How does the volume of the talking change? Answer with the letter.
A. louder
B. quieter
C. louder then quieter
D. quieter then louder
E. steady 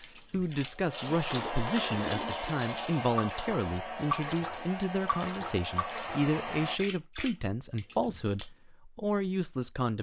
E.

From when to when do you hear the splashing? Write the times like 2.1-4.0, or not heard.
0.0-8.4.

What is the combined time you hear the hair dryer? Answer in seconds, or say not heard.
7 s.